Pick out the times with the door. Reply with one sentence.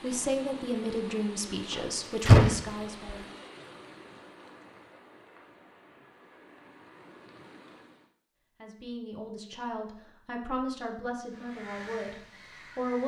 You can hear the door from 1.7 to 3.1 s.